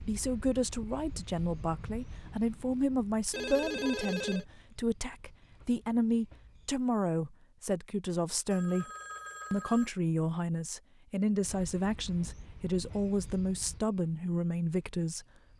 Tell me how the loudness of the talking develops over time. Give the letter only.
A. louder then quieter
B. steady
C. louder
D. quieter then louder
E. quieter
B.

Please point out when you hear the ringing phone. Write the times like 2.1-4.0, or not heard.
3.3-4.5, 8.5-9.9.